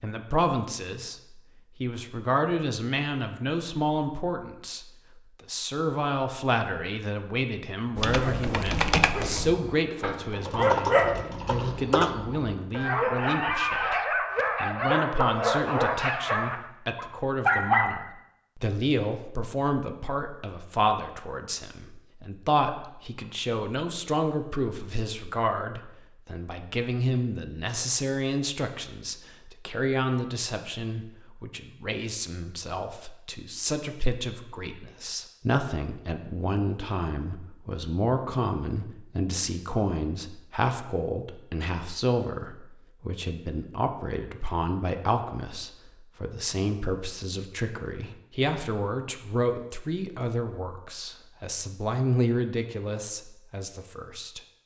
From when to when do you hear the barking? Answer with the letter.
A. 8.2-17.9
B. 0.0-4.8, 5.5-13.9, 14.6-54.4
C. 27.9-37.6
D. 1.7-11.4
A.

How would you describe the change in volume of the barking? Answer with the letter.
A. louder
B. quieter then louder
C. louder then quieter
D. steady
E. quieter
A.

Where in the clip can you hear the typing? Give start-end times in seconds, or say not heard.
8.0-12.2.